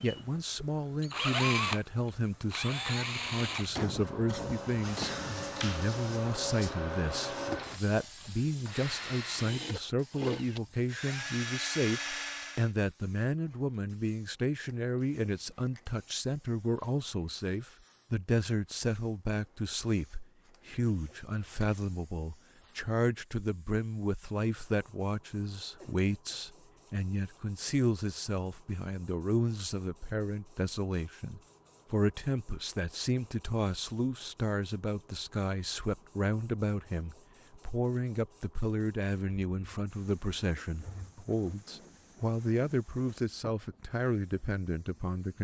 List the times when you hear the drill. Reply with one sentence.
You can hear the drill from 0.0 to 12.7 s.